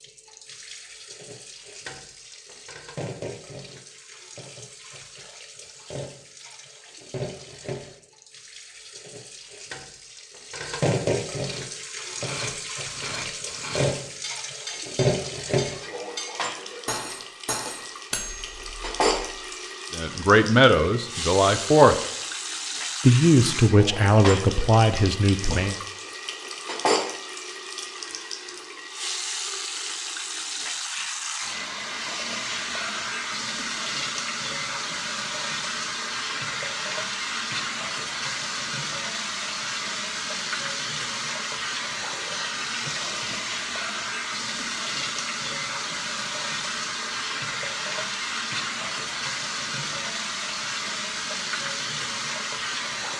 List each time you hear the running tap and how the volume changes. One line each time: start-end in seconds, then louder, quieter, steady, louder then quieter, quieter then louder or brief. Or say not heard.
0.0-53.1 louder.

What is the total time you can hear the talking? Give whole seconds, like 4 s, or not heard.
5 s.